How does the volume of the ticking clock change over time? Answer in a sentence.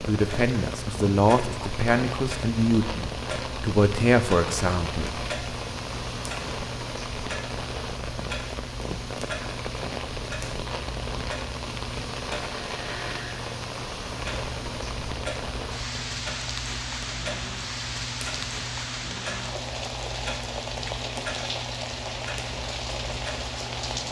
The volume of the ticking clock stays about the same.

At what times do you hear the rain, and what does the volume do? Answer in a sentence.
The rain can be heard from 0.0 to 24.0 s, at a steady volume.